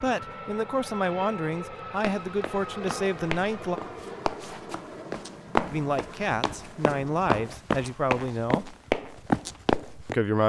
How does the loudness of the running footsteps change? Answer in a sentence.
The loudness of the running footsteps goes up.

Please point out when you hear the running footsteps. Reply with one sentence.
The running footsteps can be heard from 2.0 to 10.2 s.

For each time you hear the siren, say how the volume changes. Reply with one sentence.
The siren can't be heard in this clip.